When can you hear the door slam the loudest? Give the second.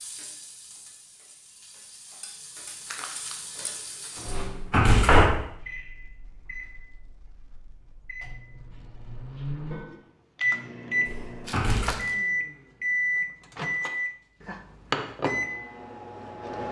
5 s.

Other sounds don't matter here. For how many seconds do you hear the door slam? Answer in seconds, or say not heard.
2 s.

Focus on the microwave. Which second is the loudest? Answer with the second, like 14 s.
13 s.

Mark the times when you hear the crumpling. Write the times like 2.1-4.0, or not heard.
2.9-3.4, 11.4-12.2.